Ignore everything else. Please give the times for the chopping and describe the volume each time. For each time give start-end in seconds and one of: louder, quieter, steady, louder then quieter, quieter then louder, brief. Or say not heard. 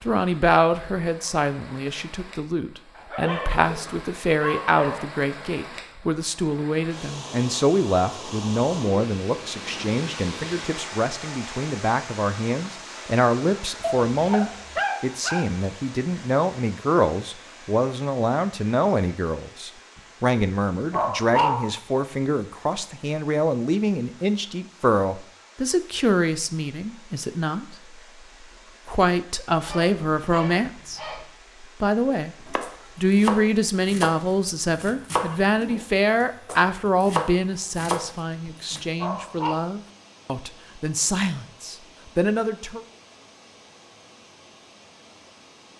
32.5-38.9 steady.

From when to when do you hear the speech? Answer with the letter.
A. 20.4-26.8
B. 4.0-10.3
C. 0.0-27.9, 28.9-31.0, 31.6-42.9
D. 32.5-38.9
C.